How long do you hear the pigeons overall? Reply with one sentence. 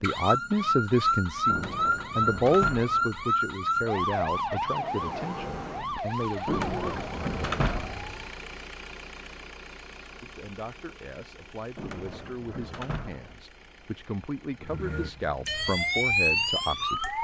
You can't hear the pigeons here.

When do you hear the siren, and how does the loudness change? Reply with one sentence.
You can hear the siren from 0.0 to 8.4 s, getting quieter; and briefly from 14.6 to 17.2 s.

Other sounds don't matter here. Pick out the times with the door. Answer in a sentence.
The door can be heard from 1.4 to 3.2 s, from 6.5 to 8.0 s and from 11.8 to 13.4 s.